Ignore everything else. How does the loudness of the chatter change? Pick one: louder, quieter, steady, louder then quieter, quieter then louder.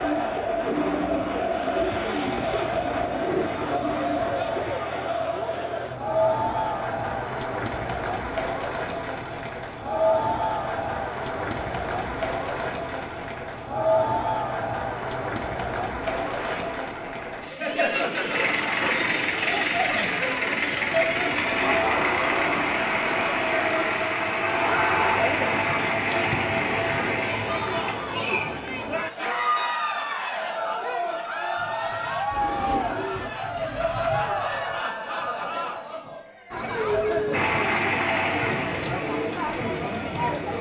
steady.